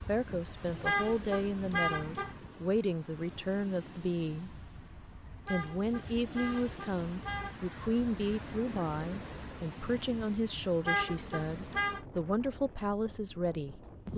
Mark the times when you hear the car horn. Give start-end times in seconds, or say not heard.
0.8-2.4, 5.5-7.6, 10.8-12.1.